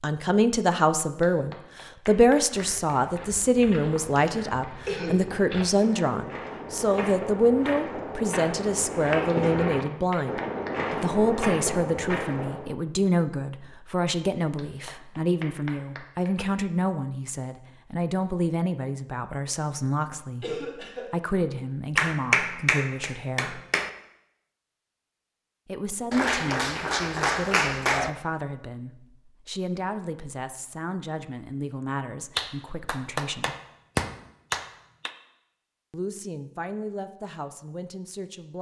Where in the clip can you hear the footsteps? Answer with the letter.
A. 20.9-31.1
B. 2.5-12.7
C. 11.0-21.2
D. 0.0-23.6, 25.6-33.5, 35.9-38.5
B.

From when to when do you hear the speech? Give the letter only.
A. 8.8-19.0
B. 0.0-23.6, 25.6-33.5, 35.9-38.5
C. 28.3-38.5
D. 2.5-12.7
B.